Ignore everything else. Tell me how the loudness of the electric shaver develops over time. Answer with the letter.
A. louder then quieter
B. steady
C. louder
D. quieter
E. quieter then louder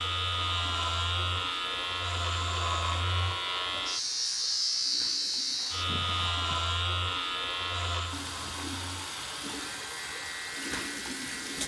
D.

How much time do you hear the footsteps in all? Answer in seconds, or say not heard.
not heard.